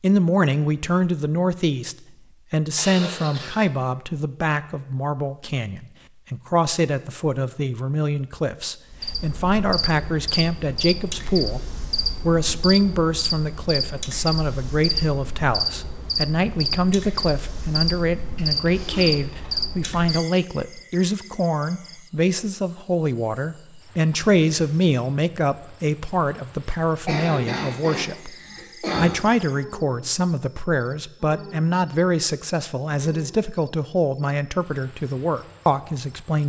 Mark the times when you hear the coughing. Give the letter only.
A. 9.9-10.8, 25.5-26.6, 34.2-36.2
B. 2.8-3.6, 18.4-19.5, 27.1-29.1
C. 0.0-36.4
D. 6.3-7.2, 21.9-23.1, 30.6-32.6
B.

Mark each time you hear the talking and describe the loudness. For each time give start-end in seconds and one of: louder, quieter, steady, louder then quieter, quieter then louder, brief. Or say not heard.
0.0-36.4 steady.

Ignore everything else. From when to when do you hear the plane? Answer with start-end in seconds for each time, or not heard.
not heard.